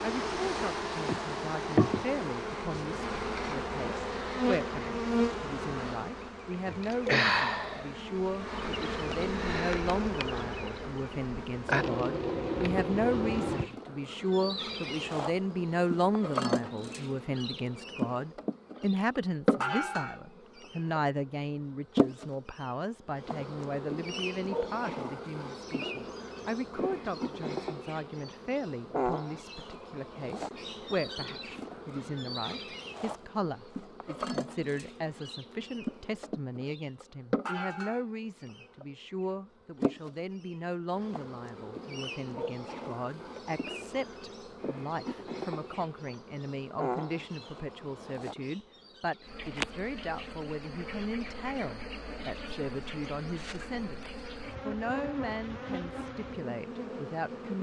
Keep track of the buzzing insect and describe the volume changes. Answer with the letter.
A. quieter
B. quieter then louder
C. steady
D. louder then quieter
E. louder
A.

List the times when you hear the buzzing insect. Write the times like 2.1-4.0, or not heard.
0.0-57.5.